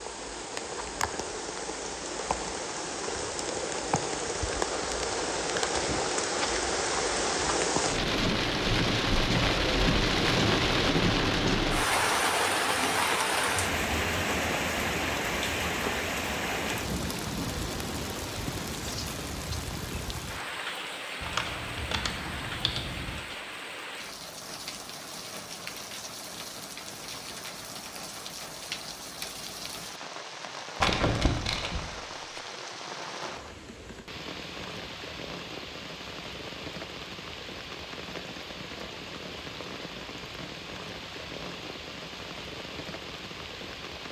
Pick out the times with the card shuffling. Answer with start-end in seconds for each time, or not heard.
30.8-32.4.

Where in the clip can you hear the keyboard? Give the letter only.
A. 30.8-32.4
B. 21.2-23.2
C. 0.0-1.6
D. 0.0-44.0
B.